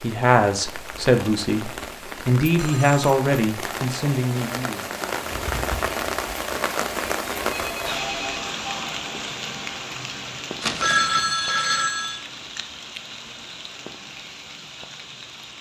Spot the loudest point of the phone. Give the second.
11 s.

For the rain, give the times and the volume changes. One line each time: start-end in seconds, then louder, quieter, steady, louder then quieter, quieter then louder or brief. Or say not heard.
0.0-15.5 louder then quieter.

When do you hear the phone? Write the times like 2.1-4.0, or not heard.
2.5-3.1, 7.4-8.6, 10.6-12.2.